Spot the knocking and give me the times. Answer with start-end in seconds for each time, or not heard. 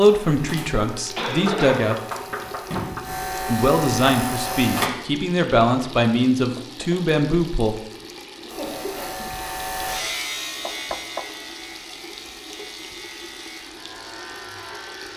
1.2-3.0, 6.5-7.0, 10.7-11.2.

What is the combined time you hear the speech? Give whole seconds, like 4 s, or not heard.
6 s.